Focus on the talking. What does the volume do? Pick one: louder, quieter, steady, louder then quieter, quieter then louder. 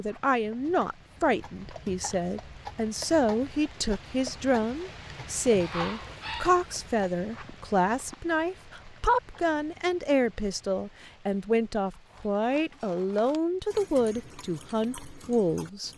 steady.